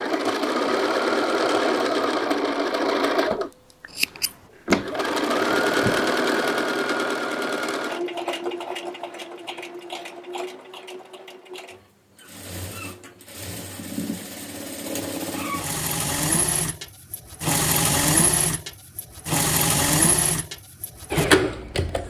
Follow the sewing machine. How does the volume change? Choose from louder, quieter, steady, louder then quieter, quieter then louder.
quieter then louder.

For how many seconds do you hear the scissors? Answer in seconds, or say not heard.
2 s.